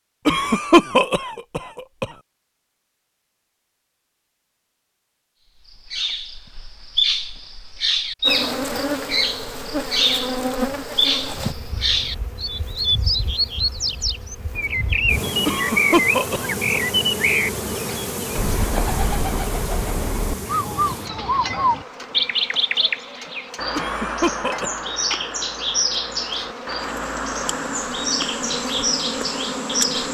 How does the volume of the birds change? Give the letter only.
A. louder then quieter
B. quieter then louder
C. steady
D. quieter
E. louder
C.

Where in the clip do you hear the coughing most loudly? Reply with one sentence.
The loudest moment of the coughing is at 1 second.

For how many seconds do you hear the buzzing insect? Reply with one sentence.
The buzzing insect can be heard for 22 seconds in total.